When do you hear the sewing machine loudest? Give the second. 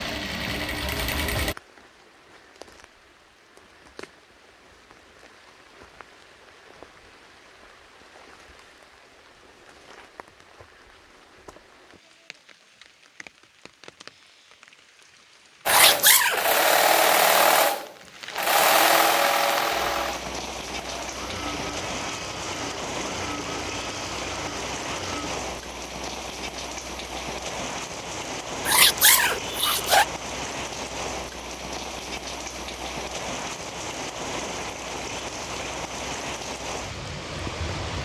17 s.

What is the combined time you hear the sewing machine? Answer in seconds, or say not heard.
11 s.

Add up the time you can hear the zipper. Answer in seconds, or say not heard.
2 s.